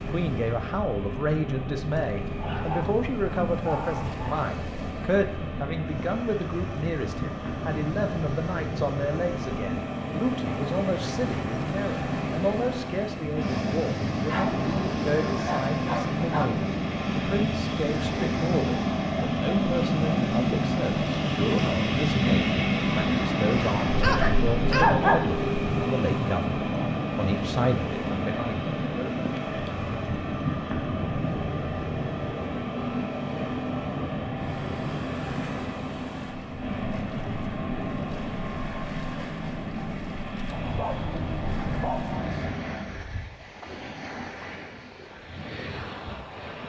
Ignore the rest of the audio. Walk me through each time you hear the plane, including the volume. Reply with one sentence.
You can hear the plane from 0.0 to 43.0 s, getting louder then quieter.